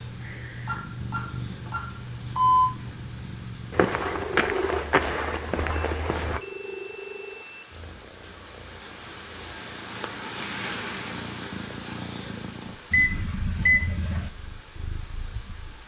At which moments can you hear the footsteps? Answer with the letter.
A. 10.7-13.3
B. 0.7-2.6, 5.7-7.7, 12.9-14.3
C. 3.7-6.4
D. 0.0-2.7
C.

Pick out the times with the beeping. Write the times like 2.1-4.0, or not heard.
0.7-2.6, 5.7-7.7, 12.9-14.3.